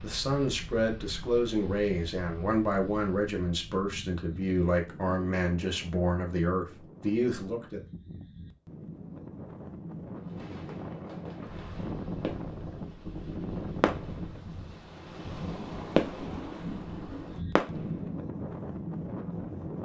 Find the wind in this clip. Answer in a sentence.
You can hear the wind from 0.0 to 19.8 s.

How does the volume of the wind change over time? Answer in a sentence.
The loudness of the wind goes up.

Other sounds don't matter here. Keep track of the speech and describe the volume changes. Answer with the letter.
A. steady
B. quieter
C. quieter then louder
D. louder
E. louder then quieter
A.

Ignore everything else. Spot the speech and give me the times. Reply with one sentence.
You can hear the speech from 0.0 to 7.8 s.